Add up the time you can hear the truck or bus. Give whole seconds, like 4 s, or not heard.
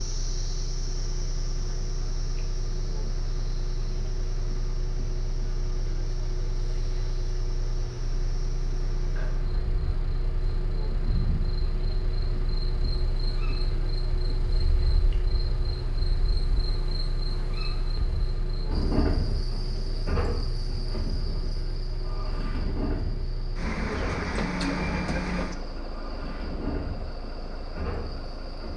29 s.